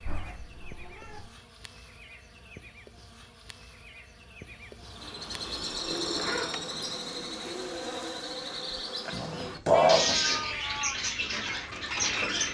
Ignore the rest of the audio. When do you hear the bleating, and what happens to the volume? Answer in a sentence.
You can't hear the bleating here.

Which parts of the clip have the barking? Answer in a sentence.
You can't hear the barking here.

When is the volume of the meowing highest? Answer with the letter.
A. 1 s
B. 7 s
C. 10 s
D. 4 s
C.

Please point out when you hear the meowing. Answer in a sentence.
The meowing can be heard from 0.0 to 1.2 s, from 6.0 to 6.5 s and from 9.7 to 10.9 s.